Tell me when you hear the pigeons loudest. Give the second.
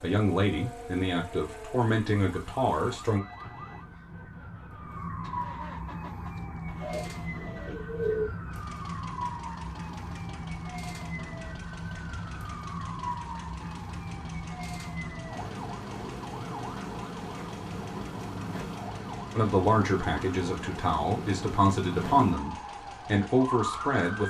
8 s.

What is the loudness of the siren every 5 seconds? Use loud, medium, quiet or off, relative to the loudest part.
medium, loud, loud, loud, loud.